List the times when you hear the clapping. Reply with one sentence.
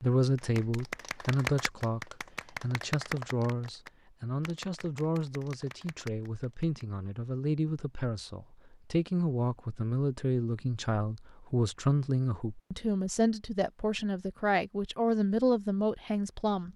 The clapping can be heard from 0.3 to 6.8 s.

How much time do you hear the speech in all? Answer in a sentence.
You can hear the speech for 17 seconds altogether.